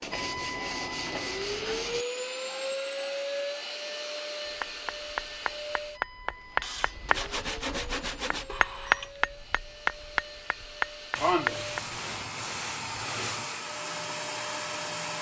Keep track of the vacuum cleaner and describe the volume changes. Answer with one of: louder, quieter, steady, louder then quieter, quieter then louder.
quieter then louder.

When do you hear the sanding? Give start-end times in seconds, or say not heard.
0.0-2.0, 6.6-8.4, 11.2-13.6.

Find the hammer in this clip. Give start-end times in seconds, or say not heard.
4.6-11.9.